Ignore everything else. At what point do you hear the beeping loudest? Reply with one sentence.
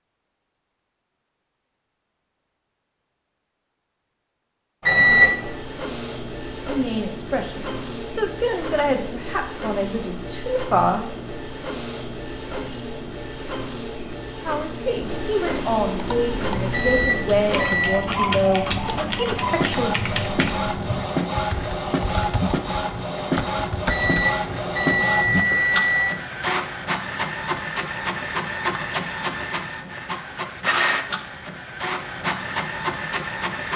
The volume of the beeping peaks at 5 seconds.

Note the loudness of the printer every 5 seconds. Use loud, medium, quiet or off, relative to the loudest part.
off, medium, medium, loud, loud, loud, loud.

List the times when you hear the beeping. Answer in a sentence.
The beeping can be heard from 4.8 to 5.5 s, from 16.7 to 18.1 s and from 23.9 to 26.2 s.